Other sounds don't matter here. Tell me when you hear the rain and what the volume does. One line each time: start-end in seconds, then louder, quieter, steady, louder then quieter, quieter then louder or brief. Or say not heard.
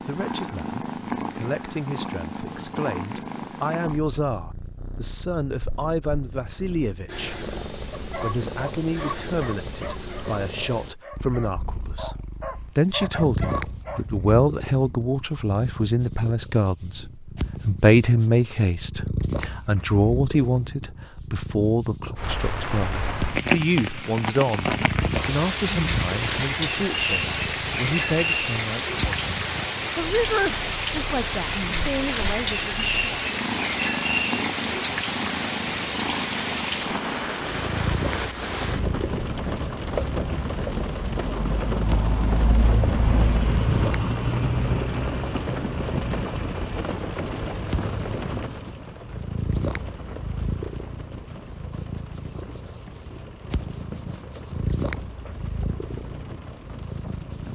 22.1-57.5 quieter.